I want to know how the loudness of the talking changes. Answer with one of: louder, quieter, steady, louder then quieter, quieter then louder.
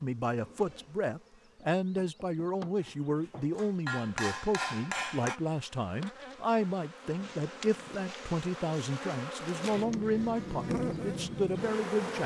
steady.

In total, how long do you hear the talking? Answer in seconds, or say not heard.
12 s.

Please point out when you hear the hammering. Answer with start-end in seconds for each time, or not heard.
2.8-5.4.